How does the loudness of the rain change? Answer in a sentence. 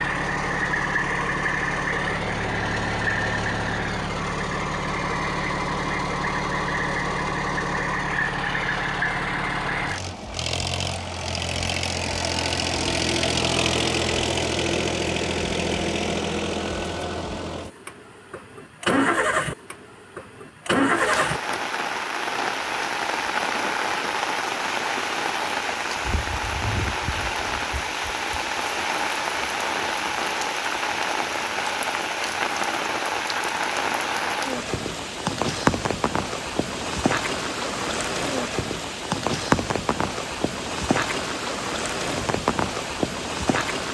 The volume of the rain stays about the same.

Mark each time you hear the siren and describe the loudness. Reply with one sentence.
You can't hear the siren here.